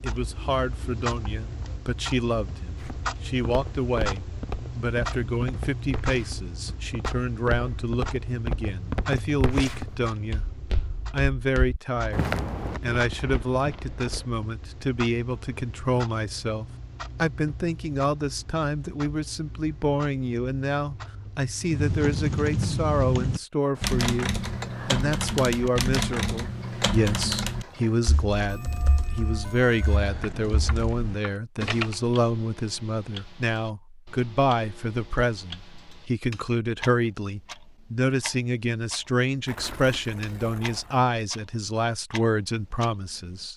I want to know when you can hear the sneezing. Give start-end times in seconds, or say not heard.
not heard.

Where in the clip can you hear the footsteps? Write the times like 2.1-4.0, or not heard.
2.8-14.3.